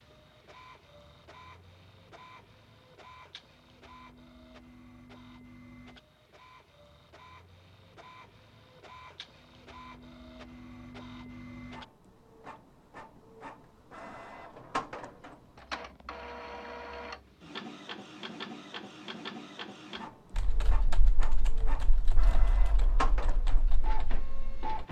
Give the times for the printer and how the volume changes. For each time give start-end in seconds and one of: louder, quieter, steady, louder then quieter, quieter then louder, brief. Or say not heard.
0.0-24.8 louder.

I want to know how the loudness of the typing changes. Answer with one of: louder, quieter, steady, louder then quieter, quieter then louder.
quieter.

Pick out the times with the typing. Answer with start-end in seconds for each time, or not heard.
20.3-24.6.